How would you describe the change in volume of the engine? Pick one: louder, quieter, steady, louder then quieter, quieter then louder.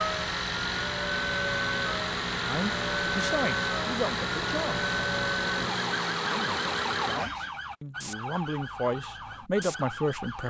steady.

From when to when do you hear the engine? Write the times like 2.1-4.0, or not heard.
0.0-7.6.